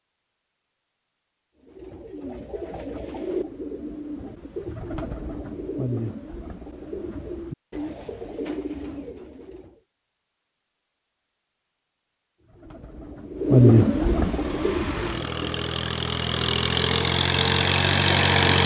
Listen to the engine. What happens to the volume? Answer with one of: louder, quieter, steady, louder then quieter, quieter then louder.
louder.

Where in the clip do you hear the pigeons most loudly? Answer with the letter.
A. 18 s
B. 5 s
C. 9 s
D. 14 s
D.